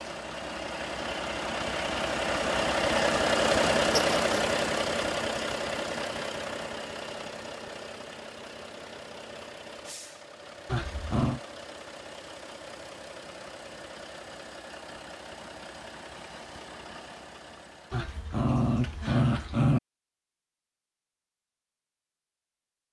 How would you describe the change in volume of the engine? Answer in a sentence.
The volume of the engine goes down.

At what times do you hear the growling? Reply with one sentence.
The growling can be heard from 4.0 to 4.5 s, from 10.7 to 11.4 s and from 17.9 to 19.8 s.